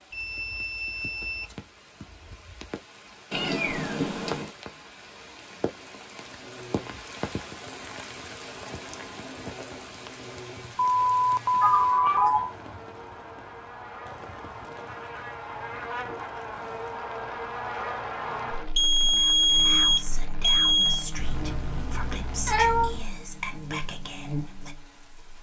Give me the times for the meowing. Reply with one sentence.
You can hear the meowing from 3.3 to 4.5 s, from 11.6 to 12.5 s and from 21.1 to 23.1 s.